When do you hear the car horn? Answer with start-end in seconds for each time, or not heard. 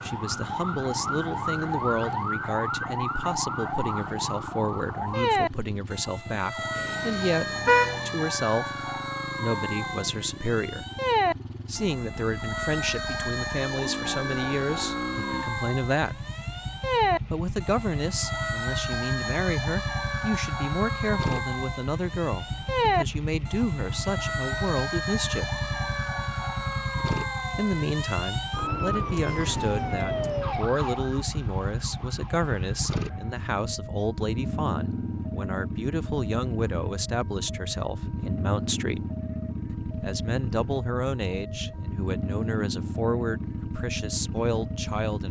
6.8-8.0.